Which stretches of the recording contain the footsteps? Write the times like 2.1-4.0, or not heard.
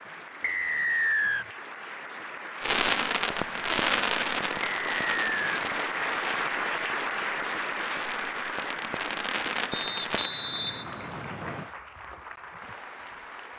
not heard.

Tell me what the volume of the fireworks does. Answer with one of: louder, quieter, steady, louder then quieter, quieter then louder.
quieter then louder.